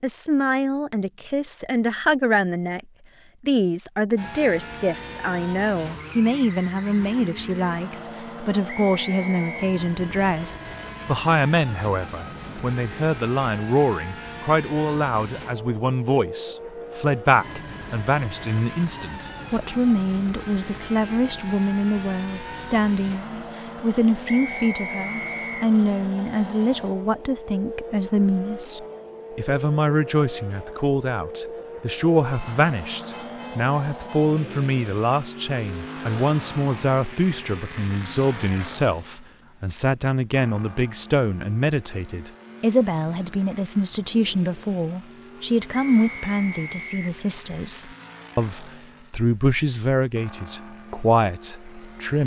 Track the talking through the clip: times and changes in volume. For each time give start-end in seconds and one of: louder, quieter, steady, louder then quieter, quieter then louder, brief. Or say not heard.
0.0-2.8 brief
3.5-52.2 steady.